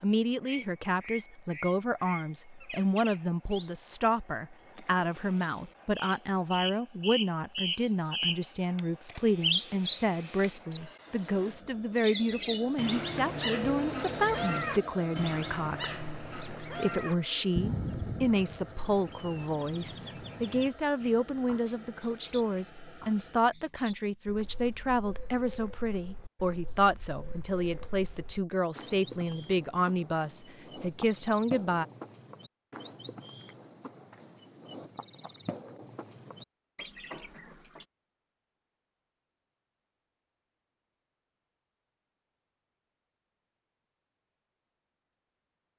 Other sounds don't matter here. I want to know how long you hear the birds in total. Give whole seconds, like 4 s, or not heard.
38 s.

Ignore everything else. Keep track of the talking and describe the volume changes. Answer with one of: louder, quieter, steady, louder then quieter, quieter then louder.
steady.